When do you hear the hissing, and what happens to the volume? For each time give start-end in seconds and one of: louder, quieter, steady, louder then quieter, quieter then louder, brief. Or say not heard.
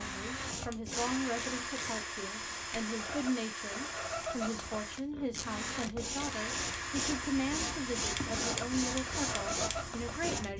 0.0-10.5 quieter then louder.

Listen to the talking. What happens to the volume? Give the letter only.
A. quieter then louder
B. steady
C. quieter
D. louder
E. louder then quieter
B.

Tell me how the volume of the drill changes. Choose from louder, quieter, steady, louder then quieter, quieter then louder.
steady.